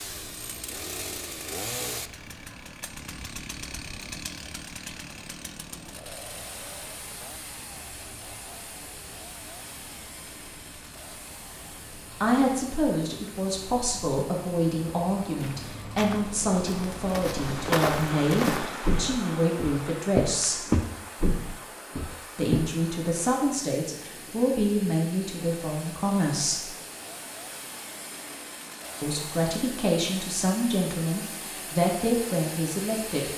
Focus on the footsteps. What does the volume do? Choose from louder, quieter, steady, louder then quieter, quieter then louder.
louder then quieter.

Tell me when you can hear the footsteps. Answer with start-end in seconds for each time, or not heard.
15.3-22.7.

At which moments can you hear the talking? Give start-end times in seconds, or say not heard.
12.2-20.6, 22.4-26.7, 29.0-33.3.